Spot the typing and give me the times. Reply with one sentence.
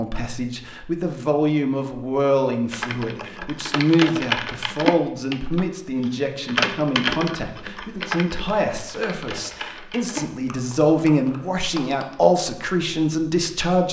You can hear the typing from 2.7 to 12.2 s.